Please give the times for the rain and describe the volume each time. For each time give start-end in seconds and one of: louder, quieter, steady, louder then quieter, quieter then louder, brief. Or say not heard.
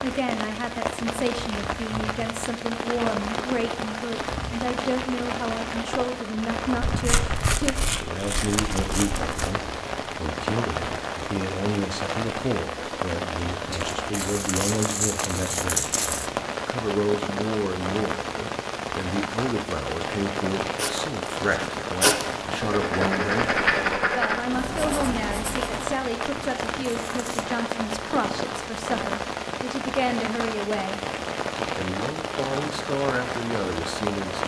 0.0-34.4 steady.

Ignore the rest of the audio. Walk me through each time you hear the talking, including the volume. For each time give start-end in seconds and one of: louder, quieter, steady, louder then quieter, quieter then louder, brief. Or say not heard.
0.0-31.0 steady
31.7-34.4 brief.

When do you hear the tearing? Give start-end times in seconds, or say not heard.
6.8-9.6, 13.7-16.3, 26.4-27.5.